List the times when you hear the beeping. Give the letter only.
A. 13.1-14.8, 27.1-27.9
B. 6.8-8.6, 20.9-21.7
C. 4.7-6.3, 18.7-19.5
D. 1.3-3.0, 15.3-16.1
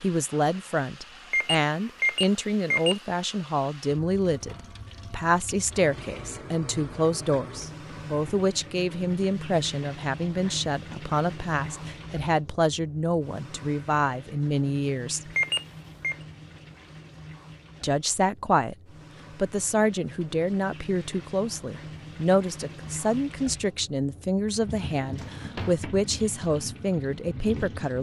D.